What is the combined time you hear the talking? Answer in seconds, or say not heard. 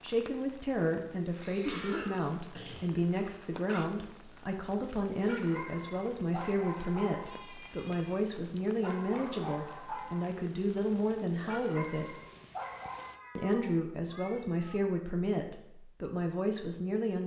16 s.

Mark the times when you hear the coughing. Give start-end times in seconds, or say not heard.
1.6-2.9.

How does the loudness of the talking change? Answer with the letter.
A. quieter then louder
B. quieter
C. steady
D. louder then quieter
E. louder
C.